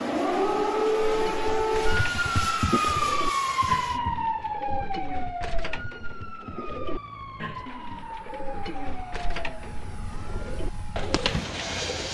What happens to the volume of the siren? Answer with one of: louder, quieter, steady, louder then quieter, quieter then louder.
quieter.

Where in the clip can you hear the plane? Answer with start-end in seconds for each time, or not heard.
0.0-4.0, 6.8-12.0.